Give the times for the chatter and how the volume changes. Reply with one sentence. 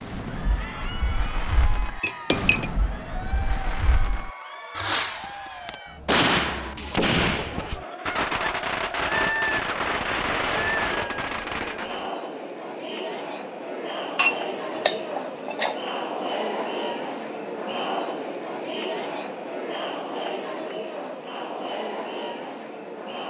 The chatter can be heard from 0.2 to 23.2 s, getting louder.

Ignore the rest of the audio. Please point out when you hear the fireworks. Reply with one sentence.
The fireworks can be heard from 0.0 to 12.1 s.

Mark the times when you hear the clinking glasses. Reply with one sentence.
You can hear the clinking glasses from 2.0 to 2.6 s and from 14.2 to 15.8 s.